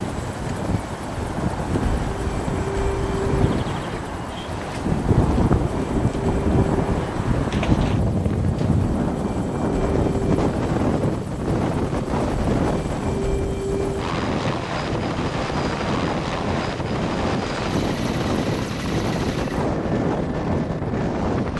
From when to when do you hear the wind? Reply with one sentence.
You can hear the wind from 0.0 to 21.5 s.